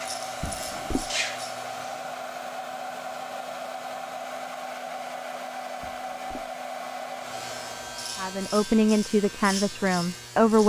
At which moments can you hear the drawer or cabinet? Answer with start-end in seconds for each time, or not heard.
0.4-1.1, 5.8-6.5.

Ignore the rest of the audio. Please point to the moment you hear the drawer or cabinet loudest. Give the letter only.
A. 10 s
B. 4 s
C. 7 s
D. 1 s
D.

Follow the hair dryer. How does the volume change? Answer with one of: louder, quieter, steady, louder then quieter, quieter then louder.
steady.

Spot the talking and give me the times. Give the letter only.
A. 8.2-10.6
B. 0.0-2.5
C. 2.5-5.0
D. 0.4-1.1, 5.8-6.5
A.